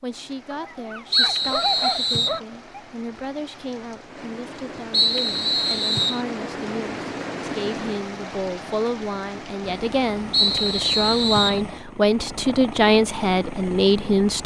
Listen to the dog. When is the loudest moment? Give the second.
2 s.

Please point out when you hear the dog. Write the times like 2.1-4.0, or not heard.
0.5-2.8.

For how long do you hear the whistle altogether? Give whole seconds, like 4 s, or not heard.
4 s.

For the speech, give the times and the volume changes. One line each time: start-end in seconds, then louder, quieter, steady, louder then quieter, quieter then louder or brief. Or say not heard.
0.0-14.4 louder.